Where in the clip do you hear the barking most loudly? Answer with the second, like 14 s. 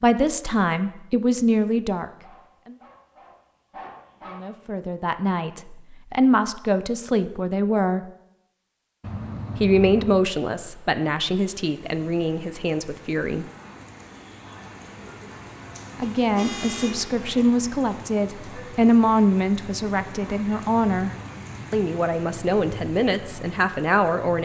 4 s.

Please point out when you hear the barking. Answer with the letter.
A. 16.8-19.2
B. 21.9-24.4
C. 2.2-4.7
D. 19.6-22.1
C.